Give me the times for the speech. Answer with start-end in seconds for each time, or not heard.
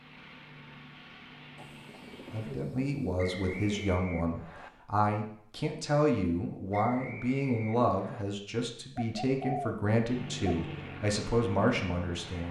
2.3-12.4.